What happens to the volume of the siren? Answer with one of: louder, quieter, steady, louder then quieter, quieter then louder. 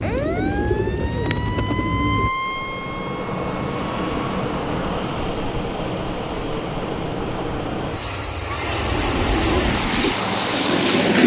louder then quieter.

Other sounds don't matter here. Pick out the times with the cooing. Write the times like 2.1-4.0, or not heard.
0.0-2.3, 8.8-11.2.